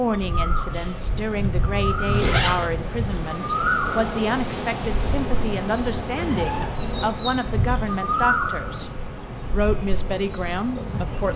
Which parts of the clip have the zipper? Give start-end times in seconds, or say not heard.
0.7-2.7, 6.2-6.8.